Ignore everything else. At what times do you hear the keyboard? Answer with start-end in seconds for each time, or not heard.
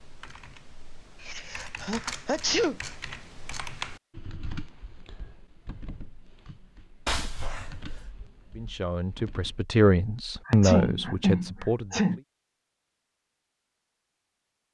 0.0-9.6.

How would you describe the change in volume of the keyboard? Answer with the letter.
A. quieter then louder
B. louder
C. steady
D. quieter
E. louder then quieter
D.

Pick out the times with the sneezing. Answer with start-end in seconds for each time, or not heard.
1.2-2.8, 7.0-8.1, 10.4-12.2.